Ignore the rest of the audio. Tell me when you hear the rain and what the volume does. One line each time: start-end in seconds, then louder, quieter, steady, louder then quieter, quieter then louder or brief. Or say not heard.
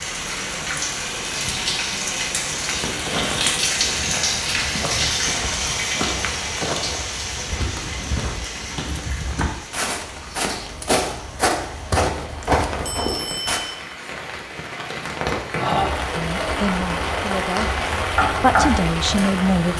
0.0-19.7 quieter then louder.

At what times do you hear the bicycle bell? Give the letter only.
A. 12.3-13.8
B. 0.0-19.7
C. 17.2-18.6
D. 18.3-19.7
A.